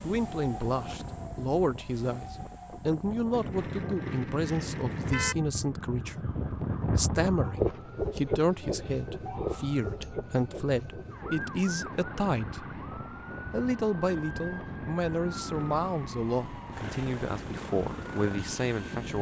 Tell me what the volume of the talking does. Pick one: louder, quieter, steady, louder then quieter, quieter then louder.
steady.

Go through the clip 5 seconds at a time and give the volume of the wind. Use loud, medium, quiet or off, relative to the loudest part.
medium, loud, medium, medium.